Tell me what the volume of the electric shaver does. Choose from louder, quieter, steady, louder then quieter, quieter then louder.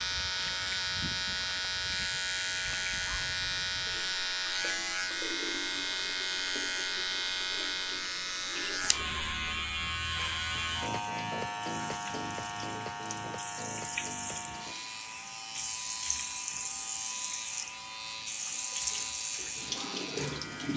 quieter.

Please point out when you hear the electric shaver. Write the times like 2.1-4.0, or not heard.
0.0-20.7.